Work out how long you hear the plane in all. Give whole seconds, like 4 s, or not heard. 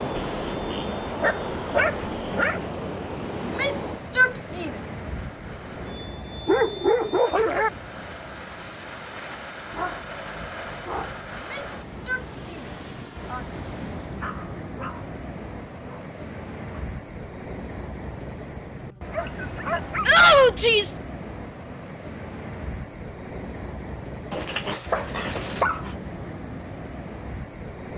14 s.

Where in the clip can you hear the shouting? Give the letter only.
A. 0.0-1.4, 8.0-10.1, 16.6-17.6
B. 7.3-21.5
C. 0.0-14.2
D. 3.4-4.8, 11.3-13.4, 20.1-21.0
D.